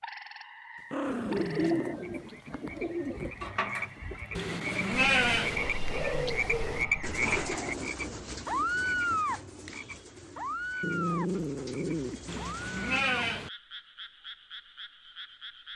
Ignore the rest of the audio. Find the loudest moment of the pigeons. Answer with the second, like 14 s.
2 s.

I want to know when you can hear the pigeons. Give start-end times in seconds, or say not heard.
1.0-13.1.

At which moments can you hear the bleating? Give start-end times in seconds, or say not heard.
4.3-5.6, 12.2-13.5.